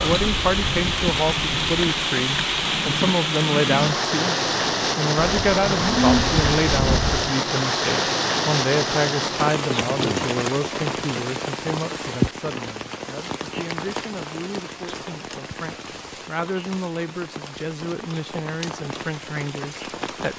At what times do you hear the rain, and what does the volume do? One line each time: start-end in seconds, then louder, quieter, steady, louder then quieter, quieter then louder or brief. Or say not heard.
0.0-20.3 quieter.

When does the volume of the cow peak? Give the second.
6 s.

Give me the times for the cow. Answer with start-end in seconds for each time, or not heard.
5.2-7.3.